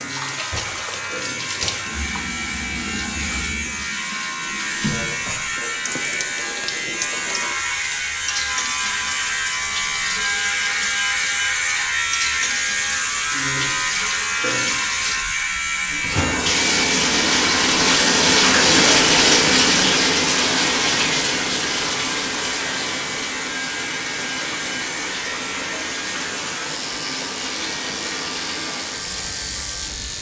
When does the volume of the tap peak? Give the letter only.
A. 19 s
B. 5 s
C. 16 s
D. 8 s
A.